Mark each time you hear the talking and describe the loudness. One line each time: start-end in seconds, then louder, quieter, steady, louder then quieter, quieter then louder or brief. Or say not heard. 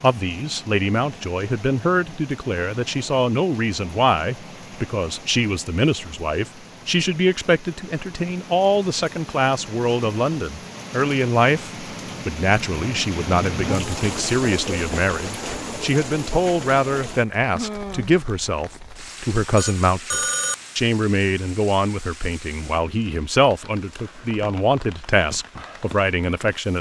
0.0-26.7 steady.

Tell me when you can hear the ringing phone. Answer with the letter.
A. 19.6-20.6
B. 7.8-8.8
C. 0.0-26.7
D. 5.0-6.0
A.